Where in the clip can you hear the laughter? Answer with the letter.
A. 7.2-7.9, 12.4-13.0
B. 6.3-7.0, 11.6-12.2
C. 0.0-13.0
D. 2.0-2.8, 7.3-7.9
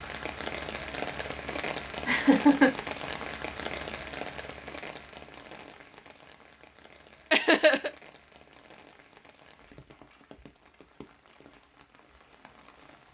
D.